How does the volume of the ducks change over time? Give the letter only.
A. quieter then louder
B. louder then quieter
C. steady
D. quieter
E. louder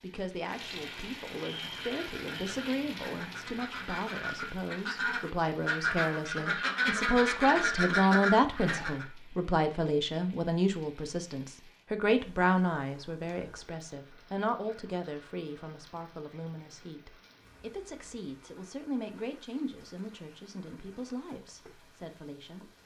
E.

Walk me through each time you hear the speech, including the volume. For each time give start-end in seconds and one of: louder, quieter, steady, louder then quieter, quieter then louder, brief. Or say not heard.
0.0-22.7 louder then quieter.